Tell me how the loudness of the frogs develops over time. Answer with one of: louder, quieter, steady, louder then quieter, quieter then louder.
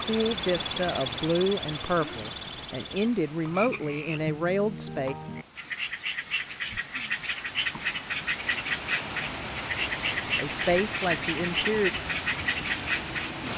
louder.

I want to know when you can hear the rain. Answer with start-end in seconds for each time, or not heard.
0.0-13.5.